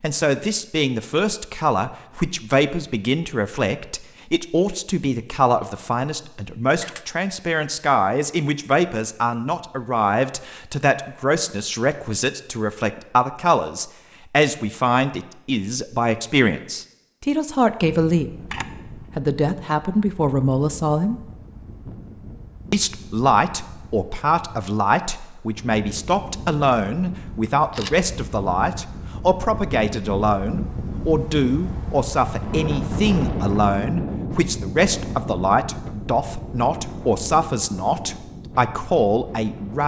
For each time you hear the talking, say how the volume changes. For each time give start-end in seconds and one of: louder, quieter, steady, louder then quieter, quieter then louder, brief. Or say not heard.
0.0-21.2 steady
22.7-39.8 steady.